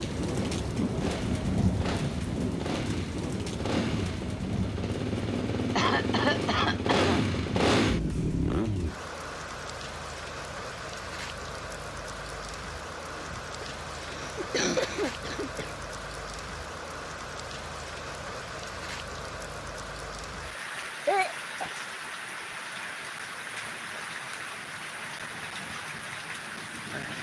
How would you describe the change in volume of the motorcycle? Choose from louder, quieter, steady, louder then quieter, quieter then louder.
louder.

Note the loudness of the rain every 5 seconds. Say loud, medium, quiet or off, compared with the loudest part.
loud, medium, medium, medium, medium, medium.